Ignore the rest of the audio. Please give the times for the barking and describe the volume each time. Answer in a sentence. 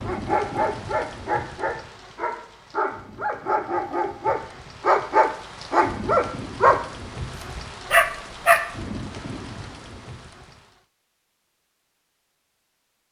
The barking can be heard from 0.0 to 8.6 s, getting louder.